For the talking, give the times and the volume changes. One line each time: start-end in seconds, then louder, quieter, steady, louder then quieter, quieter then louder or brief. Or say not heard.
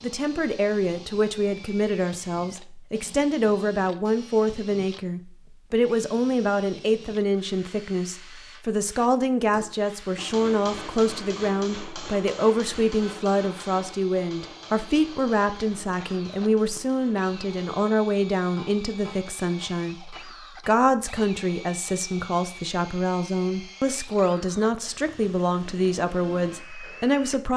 0.0-27.5 steady.